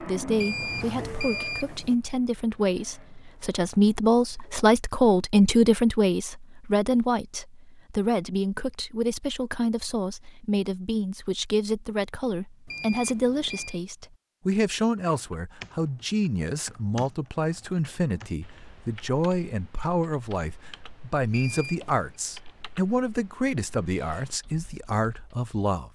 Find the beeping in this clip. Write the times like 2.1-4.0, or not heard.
0.3-1.9, 12.7-13.8, 21.3-21.9.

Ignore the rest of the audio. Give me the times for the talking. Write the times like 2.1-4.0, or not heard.
0.0-25.9.